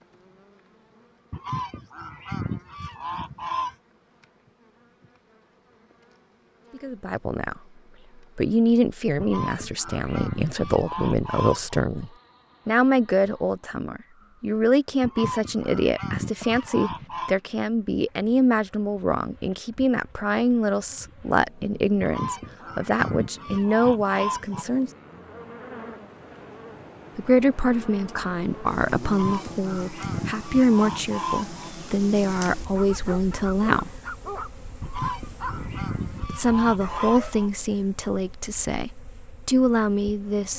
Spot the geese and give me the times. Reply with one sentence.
The geese can be heard from 1.3 to 3.8 s, from 9.2 to 11.8 s, from 15.0 to 17.4 s, from 22.0 to 24.6 s, from 29.1 to 31.6 s and from 34.8 to 37.5 s.